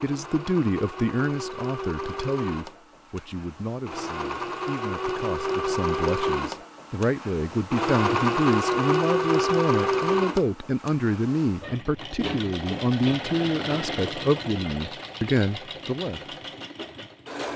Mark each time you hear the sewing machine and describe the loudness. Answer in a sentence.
The sewing machine can be heard from 0.0 to 17.5 s, getting louder then quieter.